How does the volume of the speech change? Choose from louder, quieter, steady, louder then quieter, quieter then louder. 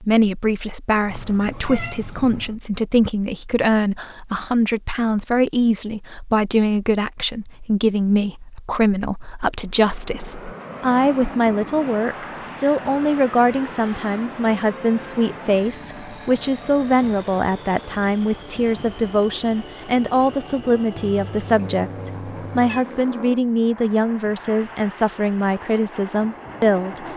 steady.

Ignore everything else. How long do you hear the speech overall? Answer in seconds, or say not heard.
27 s.